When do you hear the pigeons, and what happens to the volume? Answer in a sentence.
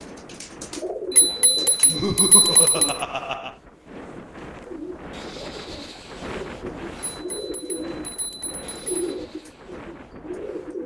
The pigeons can be heard briefly from 0.0 to 3.0 s; and from 4.5 to 10.8 s, getting louder then quieter.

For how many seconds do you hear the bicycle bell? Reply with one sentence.
You can hear the bicycle bell for 4 seconds altogether.